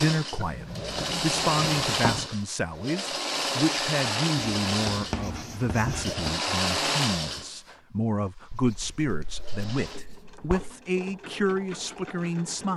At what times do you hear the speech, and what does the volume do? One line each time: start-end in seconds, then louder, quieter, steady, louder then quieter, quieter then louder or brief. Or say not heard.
0.0-12.7 steady.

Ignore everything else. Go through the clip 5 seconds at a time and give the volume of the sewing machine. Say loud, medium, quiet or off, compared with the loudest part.
loud, loud, quiet.